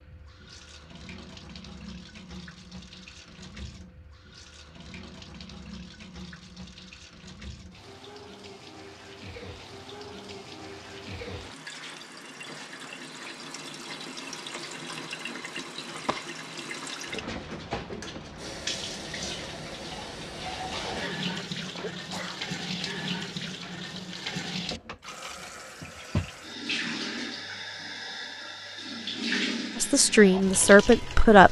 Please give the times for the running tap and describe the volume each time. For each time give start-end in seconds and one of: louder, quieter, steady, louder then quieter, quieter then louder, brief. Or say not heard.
0.0-31.4 louder.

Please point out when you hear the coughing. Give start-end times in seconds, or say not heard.
20.7-22.4.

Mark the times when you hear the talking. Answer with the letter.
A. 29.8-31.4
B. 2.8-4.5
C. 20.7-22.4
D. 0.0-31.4
A.